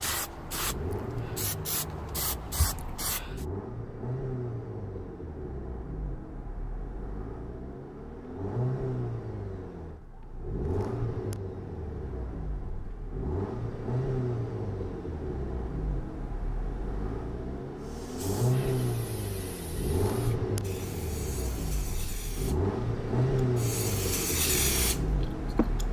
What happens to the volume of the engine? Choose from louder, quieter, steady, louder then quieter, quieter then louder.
louder.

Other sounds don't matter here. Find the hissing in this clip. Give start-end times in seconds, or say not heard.
0.0-3.5, 17.8-25.8.